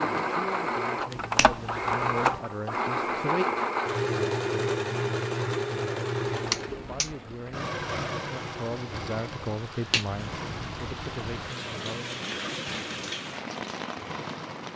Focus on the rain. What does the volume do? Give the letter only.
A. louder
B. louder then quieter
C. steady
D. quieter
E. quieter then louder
A.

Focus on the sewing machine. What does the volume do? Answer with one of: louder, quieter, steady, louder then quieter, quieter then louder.
quieter.